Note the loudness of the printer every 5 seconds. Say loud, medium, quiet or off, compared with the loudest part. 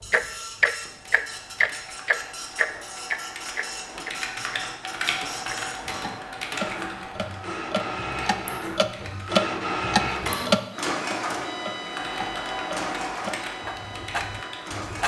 medium, loud, loud.